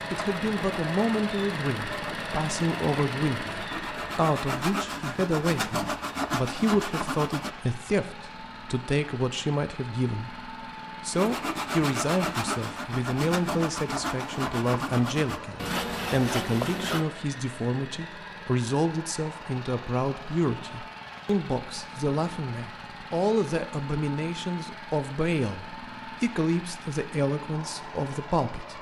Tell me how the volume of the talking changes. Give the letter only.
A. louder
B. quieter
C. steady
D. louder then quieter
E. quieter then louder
C.